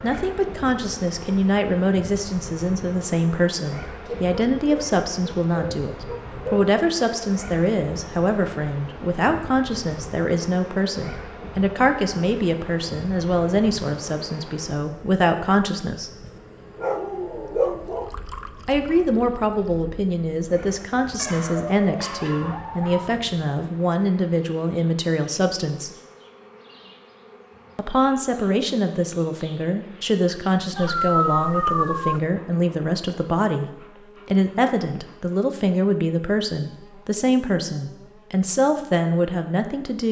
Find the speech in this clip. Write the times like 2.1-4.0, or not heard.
0.0-16.1, 18.6-25.9, 27.8-33.6, 34.2-40.0.